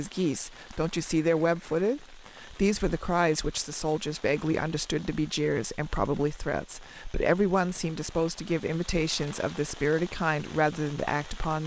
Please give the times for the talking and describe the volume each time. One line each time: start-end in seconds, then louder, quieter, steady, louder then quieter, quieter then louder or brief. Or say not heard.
0.0-11.6 steady.